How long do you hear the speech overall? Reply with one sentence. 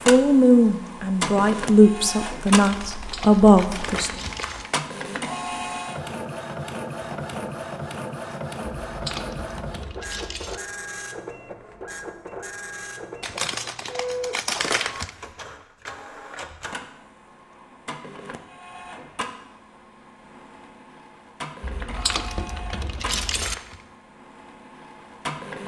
You can hear the speech for 4 seconds altogether.